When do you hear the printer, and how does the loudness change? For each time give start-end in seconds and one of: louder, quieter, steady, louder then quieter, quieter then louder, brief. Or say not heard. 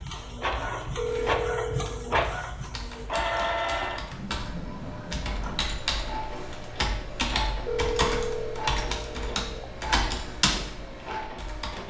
0.0-11.8 quieter.